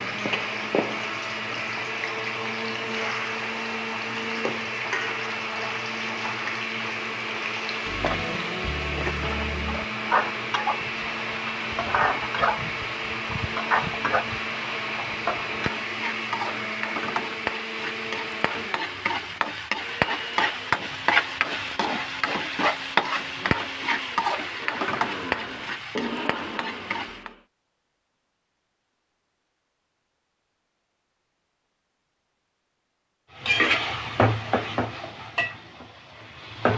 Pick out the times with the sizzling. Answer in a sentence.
The sizzling can be heard from 0.0 to 27.3 s and from 33.4 to 36.7 s.